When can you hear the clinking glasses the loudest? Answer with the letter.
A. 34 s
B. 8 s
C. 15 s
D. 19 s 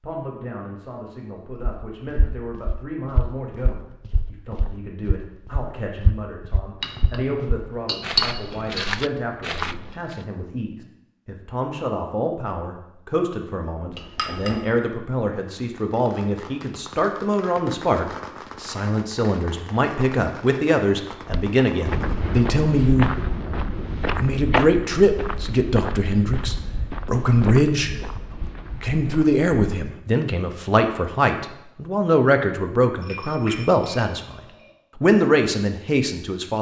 B.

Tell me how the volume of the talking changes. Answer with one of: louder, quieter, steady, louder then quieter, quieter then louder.
louder.